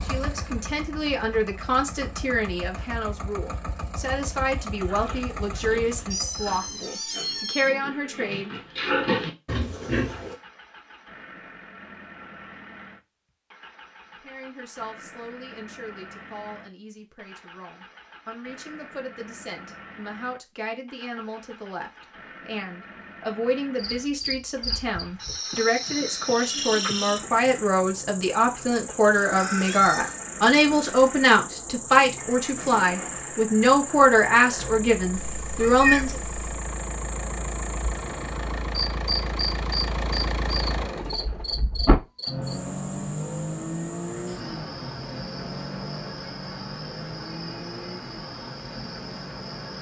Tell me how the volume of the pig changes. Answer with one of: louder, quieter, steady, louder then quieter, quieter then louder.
louder.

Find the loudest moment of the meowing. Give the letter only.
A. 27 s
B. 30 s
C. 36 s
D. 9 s
C.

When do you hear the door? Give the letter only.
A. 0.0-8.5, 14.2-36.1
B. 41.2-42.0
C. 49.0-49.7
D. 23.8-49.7
B.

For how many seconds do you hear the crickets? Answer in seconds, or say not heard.
26 s.